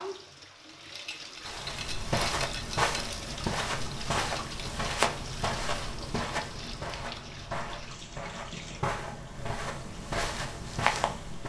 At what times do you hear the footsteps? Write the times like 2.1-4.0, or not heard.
1.4-11.4.